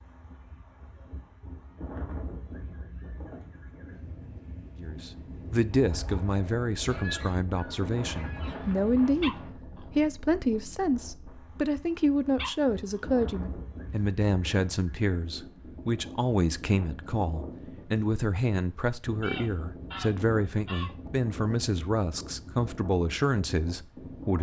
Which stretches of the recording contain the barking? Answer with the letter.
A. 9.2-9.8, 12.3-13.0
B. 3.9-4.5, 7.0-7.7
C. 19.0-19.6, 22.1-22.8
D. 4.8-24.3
A.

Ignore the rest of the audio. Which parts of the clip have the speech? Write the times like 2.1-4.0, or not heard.
4.8-24.3.